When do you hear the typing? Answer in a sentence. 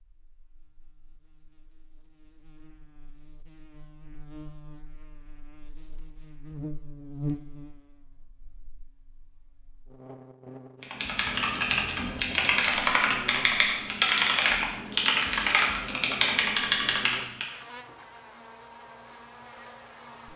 You can hear the typing from 10.8 to 17.4 s.